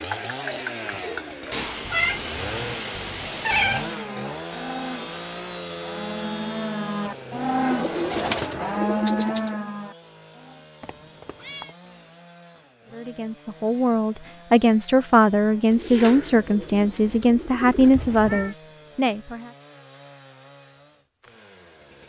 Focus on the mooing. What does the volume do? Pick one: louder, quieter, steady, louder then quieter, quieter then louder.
louder.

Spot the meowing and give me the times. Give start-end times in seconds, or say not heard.
1.5-4.0, 10.8-11.8, 17.9-18.6.